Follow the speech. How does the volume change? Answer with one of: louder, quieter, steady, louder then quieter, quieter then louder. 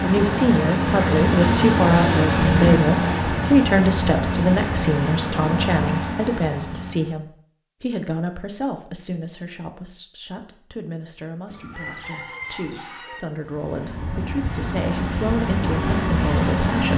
quieter then louder.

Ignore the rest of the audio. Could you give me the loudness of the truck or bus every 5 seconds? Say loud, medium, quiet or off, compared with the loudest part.
loud, medium, medium, loud.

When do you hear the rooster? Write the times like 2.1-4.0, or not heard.
11.4-13.2.